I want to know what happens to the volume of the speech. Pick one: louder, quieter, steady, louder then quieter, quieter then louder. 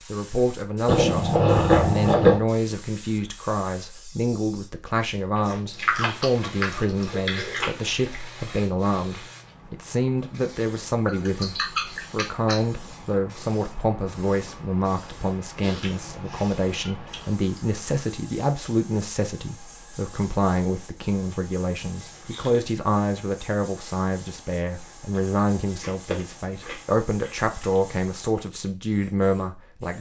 steady.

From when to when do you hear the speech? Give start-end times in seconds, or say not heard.
0.1-29.9.